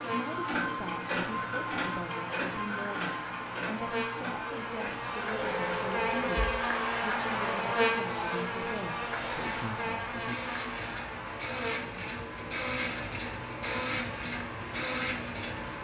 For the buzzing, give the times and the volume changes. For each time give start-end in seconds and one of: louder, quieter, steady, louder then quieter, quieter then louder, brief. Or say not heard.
0.0-15.7 louder then quieter.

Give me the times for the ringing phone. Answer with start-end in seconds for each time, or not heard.
5.3-6.6.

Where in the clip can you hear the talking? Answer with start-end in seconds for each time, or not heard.
0.0-10.4.